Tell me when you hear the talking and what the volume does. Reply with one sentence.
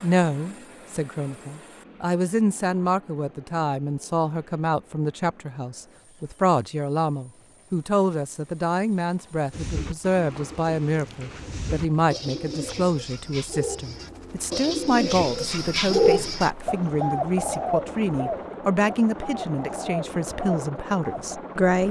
The talking can be heard from 0.0 to 21.8 s, at a steady volume.